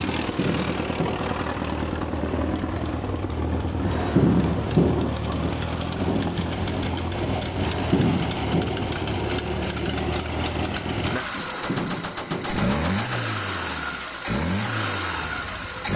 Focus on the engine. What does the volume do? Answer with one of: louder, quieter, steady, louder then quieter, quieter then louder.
steady.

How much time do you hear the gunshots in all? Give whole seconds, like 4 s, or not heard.
2 s.